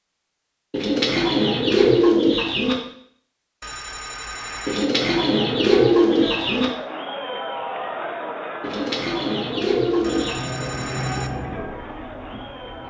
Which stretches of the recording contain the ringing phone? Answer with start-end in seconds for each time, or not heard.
3.6-4.8, 10.0-11.3.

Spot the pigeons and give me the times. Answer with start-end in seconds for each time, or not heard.
0.7-2.8, 4.7-6.7, 8.6-10.4.